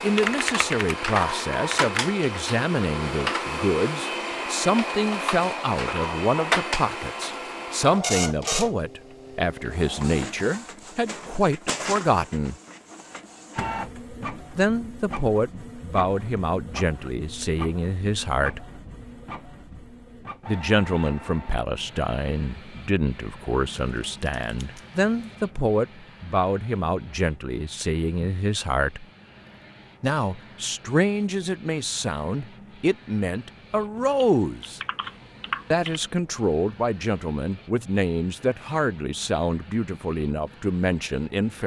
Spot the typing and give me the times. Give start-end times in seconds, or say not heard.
0.1-2.1, 23.8-25.4, 34.0-36.0.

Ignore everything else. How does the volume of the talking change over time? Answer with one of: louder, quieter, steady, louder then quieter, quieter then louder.
steady.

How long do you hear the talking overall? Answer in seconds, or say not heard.
36 s.